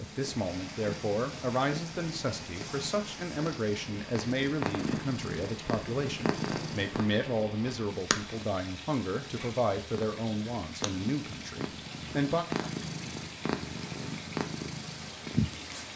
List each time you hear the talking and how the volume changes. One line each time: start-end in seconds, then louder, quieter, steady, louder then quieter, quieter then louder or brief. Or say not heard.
0.0-12.4 steady.